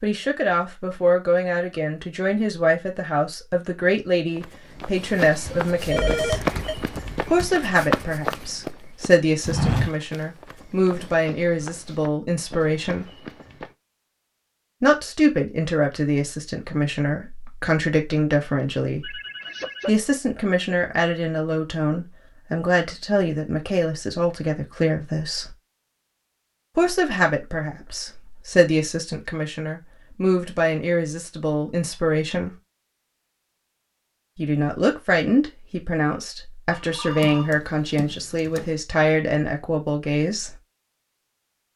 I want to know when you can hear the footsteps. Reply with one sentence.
You can hear the footsteps from 4.3 to 13.8 s.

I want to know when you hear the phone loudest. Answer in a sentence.
The volume of the phone peaks at 6 seconds.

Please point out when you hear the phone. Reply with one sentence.
You can hear the phone from 5.5 to 6.8 s, from 19.0 to 19.9 s and from 36.7 to 37.6 s.